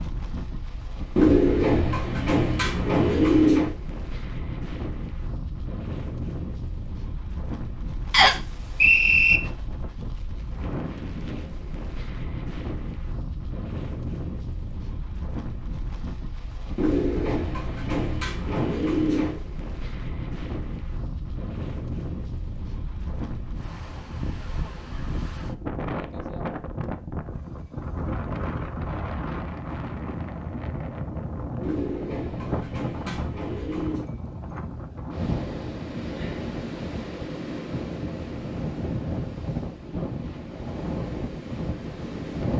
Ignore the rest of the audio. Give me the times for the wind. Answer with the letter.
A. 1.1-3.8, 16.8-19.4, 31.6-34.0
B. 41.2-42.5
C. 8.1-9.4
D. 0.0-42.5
D.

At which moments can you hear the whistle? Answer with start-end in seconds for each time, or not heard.
8.1-9.4.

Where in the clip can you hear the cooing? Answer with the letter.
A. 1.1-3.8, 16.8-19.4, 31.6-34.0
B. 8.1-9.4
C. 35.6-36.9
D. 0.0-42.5
A.